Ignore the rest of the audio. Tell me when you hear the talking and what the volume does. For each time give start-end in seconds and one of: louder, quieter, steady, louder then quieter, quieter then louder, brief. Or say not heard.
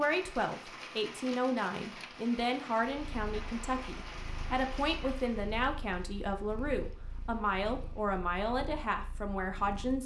0.0-10.0 steady.